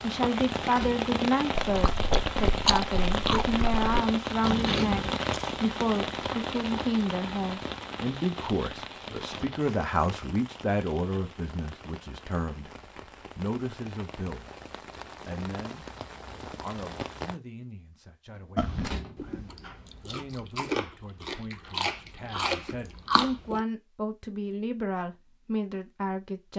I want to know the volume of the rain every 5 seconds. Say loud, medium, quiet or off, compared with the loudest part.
loud, loud, quiet, medium, off, off.